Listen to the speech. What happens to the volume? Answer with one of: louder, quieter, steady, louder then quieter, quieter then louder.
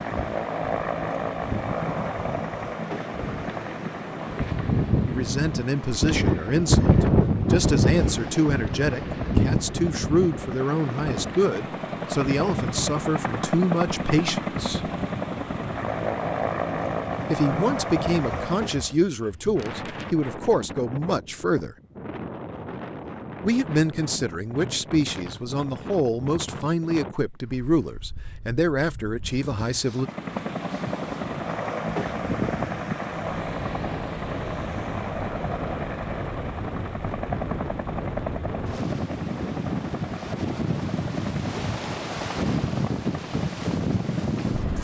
steady.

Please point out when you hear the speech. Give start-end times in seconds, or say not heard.
5.0-14.9, 17.3-21.8, 23.4-30.1.